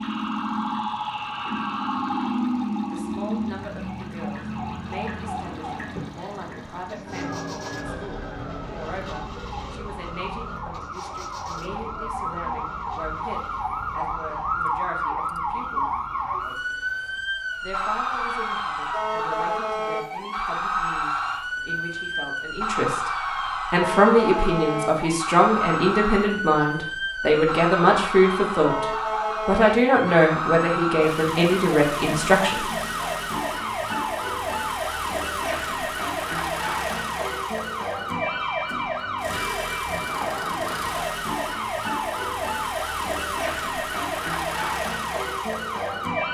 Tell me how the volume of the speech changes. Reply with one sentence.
The loudness of the speech goes up.